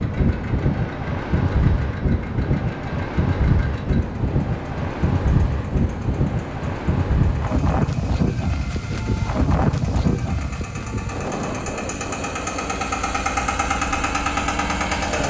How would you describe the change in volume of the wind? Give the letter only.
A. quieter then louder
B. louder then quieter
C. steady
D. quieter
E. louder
D.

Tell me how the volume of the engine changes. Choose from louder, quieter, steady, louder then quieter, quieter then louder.
louder.